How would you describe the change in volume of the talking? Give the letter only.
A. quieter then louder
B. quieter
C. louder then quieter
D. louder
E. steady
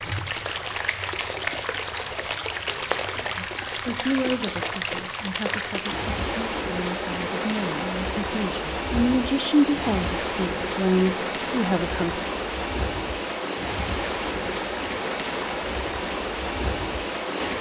A.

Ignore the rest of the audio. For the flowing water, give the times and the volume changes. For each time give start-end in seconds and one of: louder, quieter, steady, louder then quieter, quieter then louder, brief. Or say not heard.
0.0-17.5 steady.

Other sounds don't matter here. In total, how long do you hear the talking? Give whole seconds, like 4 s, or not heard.
9 s.